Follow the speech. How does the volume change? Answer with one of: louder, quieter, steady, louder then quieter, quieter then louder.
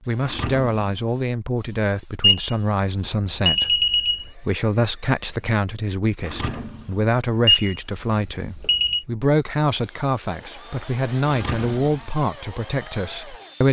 steady.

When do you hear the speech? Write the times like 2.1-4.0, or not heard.
0.1-13.6.